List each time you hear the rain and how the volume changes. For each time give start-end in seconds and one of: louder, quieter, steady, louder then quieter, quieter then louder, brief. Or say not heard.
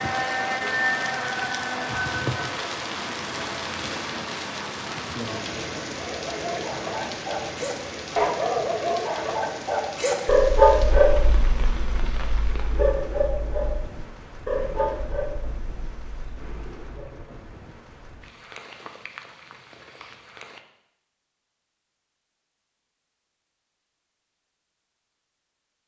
0.0-20.6 quieter.